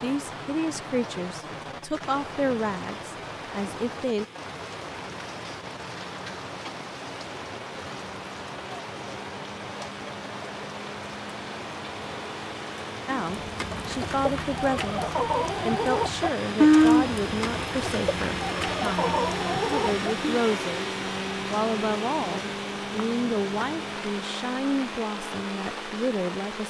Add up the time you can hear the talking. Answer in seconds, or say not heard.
17 s.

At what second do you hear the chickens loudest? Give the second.
17 s.